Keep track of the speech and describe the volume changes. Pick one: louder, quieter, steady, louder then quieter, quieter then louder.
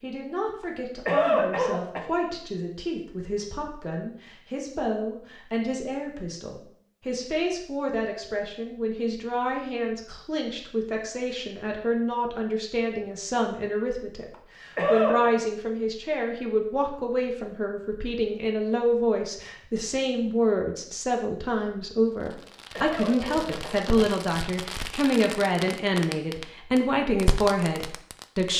louder.